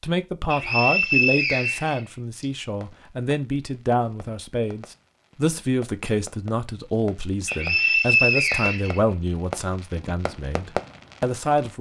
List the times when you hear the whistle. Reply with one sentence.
You can hear the whistle from 0.5 to 2.5 s and from 7.5 to 9.0 s.